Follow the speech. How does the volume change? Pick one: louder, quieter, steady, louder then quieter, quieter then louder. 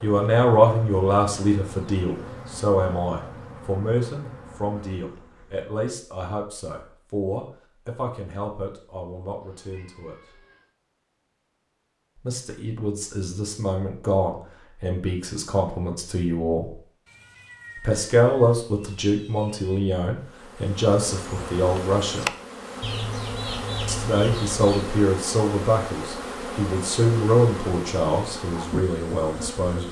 quieter then louder.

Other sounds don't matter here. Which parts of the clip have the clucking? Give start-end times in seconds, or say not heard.
22.8-24.9.